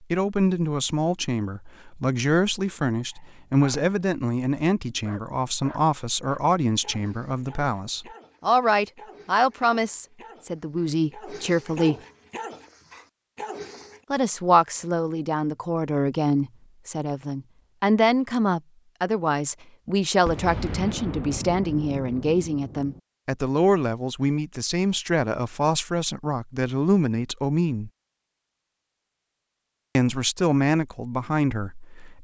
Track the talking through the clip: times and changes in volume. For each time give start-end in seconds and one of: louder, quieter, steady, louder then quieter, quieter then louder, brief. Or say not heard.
0.1-11.9 steady
14.1-27.9 steady
29.9-32.1 brief.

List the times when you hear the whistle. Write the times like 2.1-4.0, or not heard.
not heard.